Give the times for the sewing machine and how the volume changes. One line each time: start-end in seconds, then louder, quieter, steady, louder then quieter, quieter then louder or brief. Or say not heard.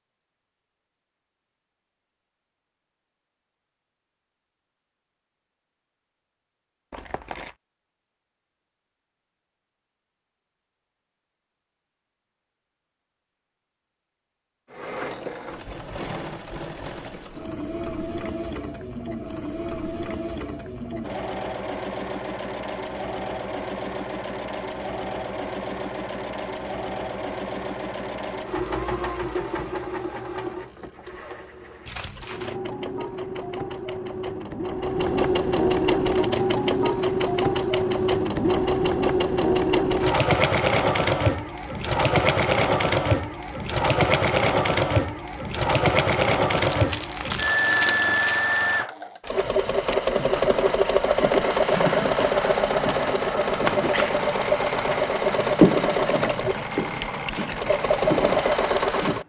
14.7-59.2 louder.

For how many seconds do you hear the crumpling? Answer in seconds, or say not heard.
3 s.